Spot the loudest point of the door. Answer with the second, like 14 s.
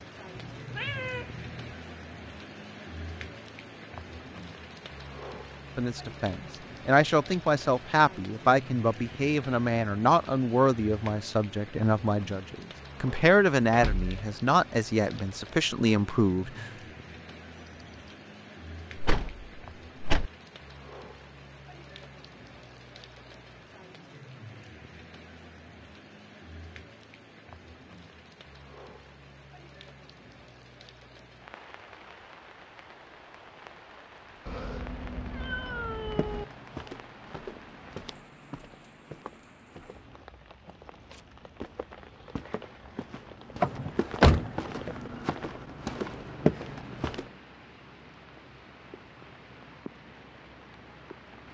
44 s.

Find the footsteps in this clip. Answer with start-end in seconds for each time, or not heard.
36.0-47.3.